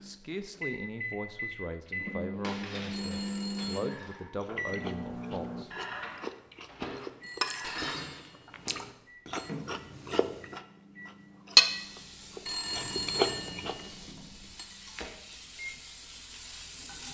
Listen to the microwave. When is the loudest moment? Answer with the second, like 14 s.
3 s.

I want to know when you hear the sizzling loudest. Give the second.
17 s.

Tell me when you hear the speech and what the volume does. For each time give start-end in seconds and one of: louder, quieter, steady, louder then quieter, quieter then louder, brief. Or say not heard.
0.0-5.8 steady.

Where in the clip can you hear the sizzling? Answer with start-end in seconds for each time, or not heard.
11.7-17.1.